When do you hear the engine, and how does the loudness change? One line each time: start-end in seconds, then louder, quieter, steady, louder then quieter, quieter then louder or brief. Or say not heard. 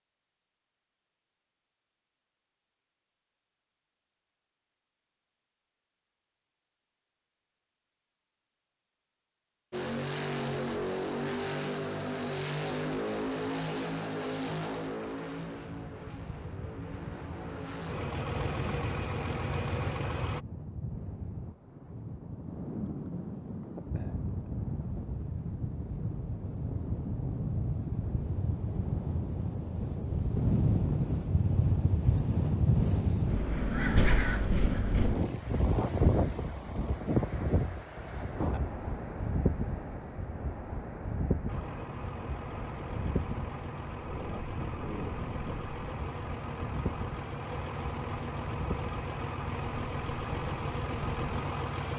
9.7-20.4 quieter then louder
41.5-51.9 louder.